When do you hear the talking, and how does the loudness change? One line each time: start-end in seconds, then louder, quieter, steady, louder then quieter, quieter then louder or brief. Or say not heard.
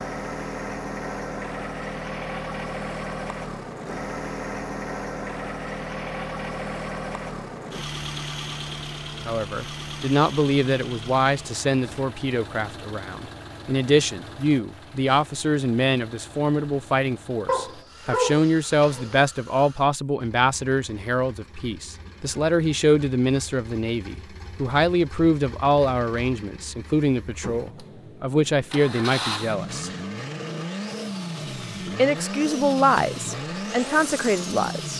9.2-29.9 steady
31.9-34.9 brief.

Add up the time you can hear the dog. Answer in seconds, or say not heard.
2 s.